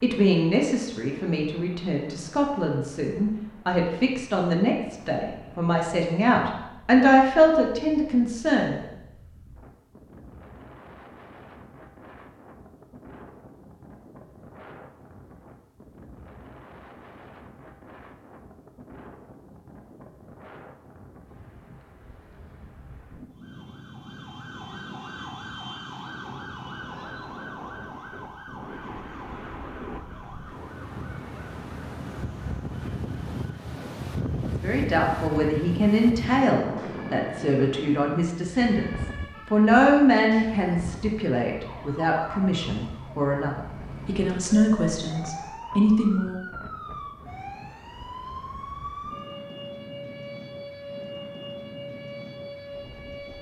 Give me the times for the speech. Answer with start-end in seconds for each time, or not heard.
0.0-8.8, 34.6-46.4.